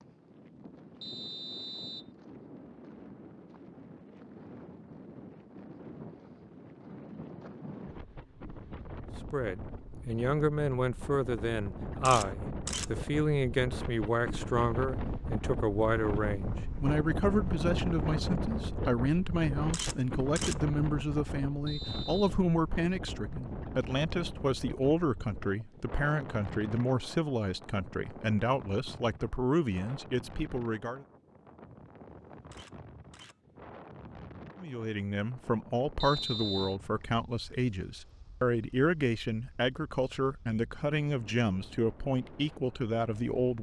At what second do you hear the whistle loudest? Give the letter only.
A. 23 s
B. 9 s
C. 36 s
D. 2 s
C.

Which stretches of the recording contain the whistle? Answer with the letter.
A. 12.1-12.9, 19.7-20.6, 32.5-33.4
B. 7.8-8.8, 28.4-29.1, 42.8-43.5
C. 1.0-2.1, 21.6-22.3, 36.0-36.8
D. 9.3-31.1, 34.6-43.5
C.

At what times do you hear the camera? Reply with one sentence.
You can hear the camera from 12.1 to 12.9 s, from 19.7 to 20.6 s and from 32.5 to 33.4 s.